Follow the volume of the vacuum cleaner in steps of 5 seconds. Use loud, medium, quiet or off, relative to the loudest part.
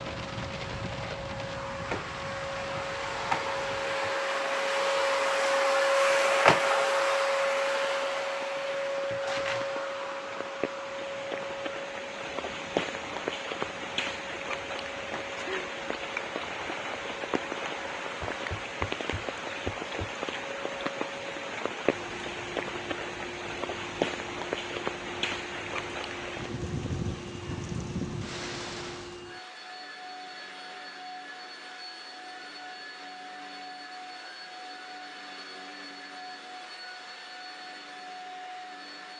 medium, loud, quiet, quiet, quiet, quiet, quiet, quiet.